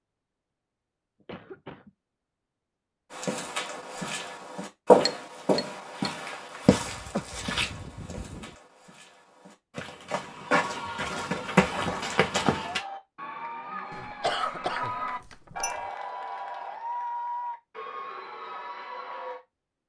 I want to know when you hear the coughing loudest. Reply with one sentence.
The loudest moment of the coughing is at 14 seconds.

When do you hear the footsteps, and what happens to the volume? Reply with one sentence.
The footsteps can be heard from 3.1 to 12.8 s, getting quieter then louder.